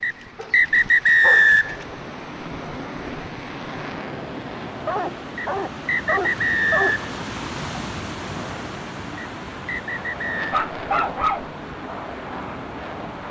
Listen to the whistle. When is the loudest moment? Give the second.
1 s.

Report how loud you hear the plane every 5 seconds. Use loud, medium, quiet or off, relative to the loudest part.
loud, medium, loud.